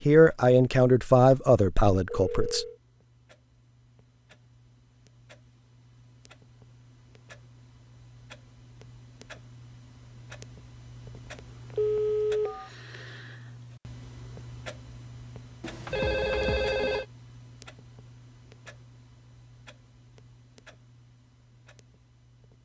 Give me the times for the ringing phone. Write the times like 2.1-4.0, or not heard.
2.0-2.8, 11.2-12.7, 15.6-17.1.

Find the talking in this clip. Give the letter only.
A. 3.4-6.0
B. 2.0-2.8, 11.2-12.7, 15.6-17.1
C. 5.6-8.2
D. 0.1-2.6
D.